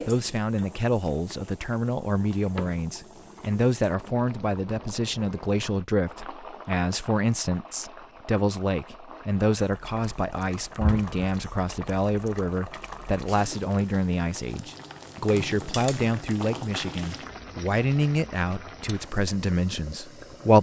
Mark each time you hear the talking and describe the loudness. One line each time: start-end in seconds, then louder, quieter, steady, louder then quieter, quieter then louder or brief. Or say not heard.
0.1-20.5 steady.